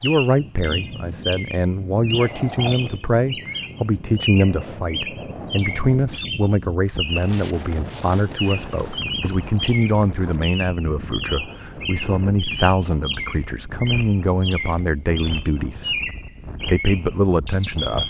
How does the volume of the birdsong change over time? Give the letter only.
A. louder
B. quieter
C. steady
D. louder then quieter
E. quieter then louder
C.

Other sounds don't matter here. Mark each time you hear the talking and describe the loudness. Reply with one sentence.
You can hear the talking from 0.0 to 18.0 s, at a steady volume.